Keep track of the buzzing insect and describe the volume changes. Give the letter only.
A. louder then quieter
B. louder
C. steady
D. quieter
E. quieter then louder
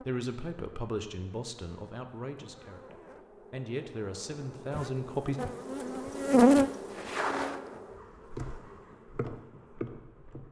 A.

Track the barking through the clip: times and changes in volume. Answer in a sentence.
The barking can't be heard in this clip.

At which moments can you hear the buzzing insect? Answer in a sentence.
You can hear the buzzing insect from 0.0 to 10.4 s.